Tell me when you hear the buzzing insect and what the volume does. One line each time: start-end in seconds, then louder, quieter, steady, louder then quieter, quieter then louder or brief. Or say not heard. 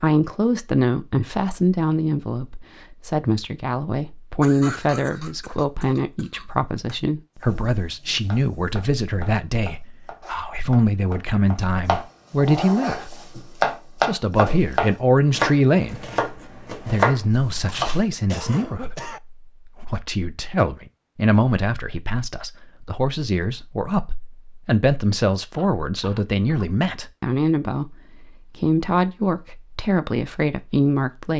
not heard.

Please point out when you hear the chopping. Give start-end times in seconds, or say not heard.
7.4-18.0.